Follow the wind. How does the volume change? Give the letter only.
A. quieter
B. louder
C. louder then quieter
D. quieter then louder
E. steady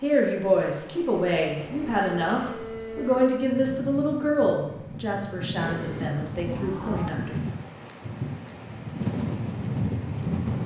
B.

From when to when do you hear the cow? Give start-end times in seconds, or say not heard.
1.5-3.3, 5.6-7.1.